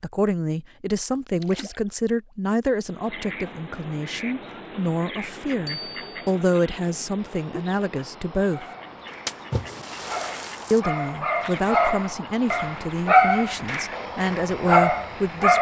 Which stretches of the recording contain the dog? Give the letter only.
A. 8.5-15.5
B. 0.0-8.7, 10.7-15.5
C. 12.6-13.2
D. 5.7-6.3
A.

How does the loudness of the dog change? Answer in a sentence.
The loudness of the dog goes up.